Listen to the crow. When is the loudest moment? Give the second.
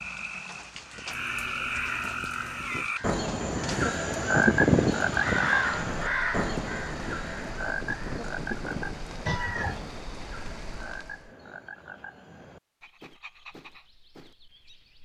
5 s.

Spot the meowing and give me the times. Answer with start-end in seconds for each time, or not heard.
1.1-2.9, 9.2-9.9.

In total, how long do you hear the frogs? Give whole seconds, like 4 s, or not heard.
15 s.